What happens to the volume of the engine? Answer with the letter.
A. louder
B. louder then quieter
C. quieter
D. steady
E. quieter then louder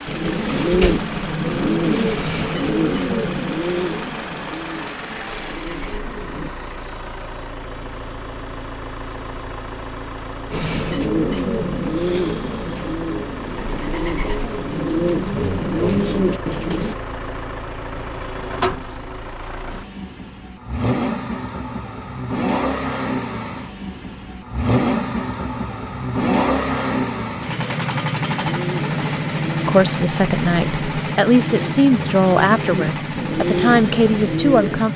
A.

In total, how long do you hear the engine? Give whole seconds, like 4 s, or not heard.
35 s.